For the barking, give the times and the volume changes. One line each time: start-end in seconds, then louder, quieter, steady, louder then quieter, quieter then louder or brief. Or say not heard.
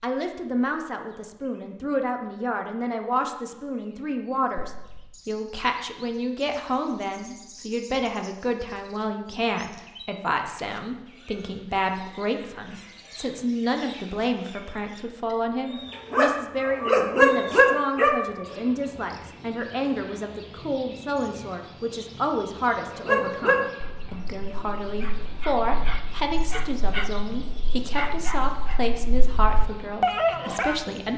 16.1-18.6 brief
22.9-30.8 quieter then louder.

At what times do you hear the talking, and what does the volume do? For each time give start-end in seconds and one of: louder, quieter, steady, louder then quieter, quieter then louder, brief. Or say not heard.
0.0-31.1 steady.